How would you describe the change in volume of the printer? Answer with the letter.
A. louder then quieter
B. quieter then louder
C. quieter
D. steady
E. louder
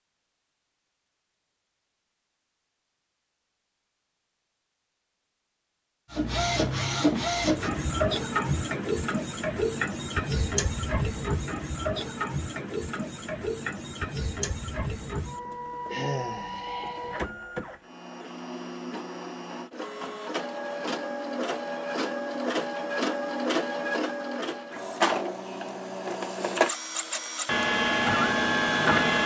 B.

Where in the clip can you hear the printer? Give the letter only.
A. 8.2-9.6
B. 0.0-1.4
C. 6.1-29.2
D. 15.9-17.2
C.